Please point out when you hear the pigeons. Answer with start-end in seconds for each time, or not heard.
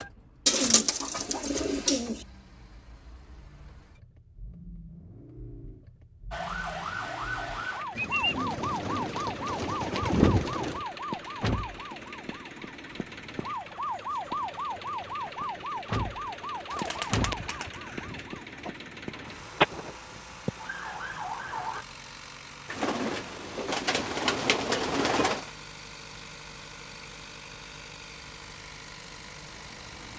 0.5-2.2, 8.0-10.8, 16.7-18.8, 22.7-25.5.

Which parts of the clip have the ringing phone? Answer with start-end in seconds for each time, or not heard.
not heard.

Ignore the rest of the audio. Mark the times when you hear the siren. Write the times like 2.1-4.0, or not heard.
6.3-21.9.